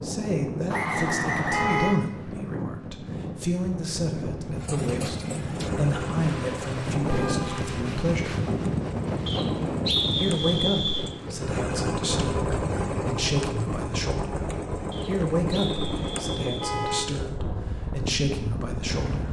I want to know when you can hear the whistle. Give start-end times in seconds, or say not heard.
0.7-1.9, 9.2-11.1, 14.9-16.7.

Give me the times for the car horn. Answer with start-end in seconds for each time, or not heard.
1.5-2.0, 7.0-7.7, 16.6-17.1.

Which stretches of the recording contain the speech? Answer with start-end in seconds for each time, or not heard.
0.0-8.4, 10.2-14.4, 15.1-19.2.